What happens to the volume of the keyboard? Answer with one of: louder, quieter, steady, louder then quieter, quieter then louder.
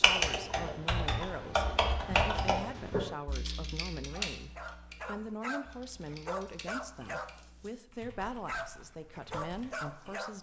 quieter.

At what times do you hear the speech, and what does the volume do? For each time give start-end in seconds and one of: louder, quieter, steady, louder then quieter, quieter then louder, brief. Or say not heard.
0.0-10.3 steady.